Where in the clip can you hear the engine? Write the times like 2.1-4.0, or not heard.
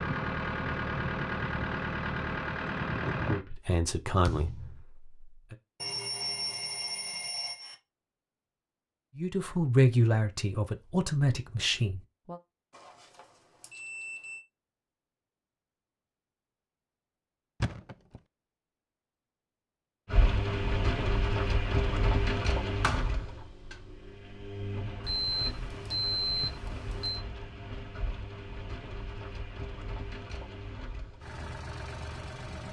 0.0-3.4, 20.1-32.6.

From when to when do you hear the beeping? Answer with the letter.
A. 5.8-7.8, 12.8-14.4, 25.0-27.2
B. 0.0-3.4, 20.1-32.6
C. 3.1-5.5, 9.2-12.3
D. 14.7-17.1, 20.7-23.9
A.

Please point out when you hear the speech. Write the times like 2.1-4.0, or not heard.
3.1-5.5, 9.2-12.3.